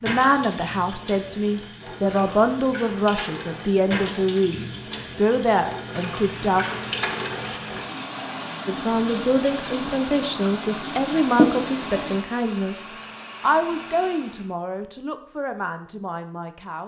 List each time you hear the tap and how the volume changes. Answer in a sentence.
The tap can be heard from 0.0 to 12.2 s, getting louder.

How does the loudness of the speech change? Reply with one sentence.
The volume of the speech goes down.